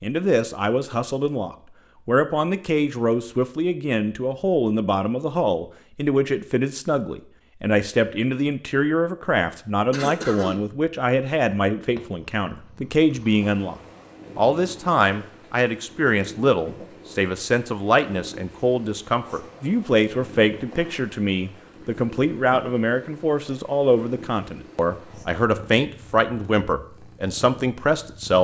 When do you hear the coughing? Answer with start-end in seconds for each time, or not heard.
9.9-10.7.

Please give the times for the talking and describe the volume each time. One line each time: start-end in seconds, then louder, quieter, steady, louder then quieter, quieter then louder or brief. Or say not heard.
0.0-13.8 steady
14.3-28.3 steady.